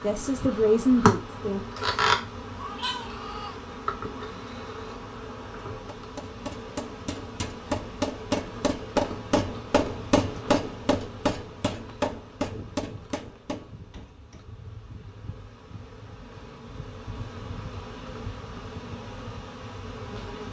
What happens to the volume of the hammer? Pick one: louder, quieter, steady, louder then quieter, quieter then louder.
louder then quieter.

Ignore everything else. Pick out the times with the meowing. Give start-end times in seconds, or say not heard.
1.8-3.6.